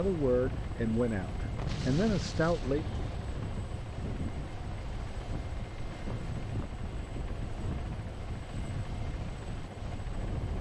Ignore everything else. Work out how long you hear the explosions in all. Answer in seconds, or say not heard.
2 s.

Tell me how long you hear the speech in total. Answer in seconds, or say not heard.
3 s.